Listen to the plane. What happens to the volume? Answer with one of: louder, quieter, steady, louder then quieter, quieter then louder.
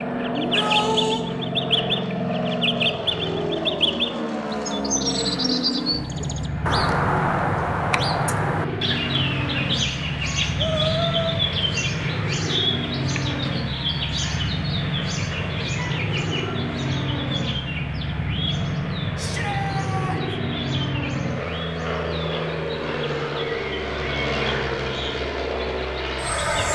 steady.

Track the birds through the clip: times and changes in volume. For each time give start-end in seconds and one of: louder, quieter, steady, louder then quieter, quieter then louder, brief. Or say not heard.
0.0-26.6 quieter.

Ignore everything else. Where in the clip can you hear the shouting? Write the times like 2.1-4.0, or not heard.
0.3-1.2, 10.6-11.4, 19.1-20.2.